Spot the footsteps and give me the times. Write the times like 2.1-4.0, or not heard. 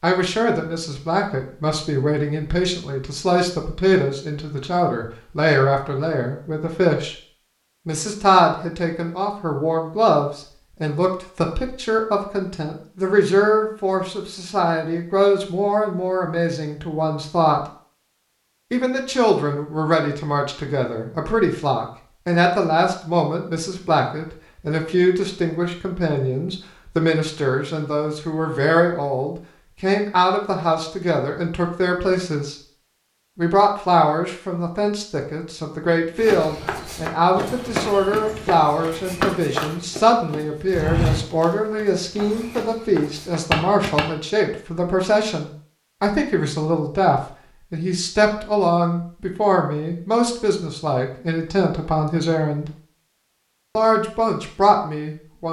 36.1-44.0.